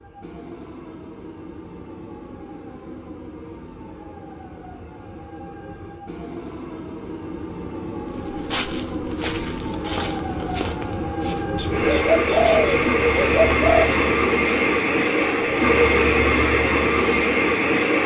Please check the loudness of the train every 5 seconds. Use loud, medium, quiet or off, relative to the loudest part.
quiet, quiet, loud, loud.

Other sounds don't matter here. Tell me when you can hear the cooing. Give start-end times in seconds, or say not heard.
11.6-13.8.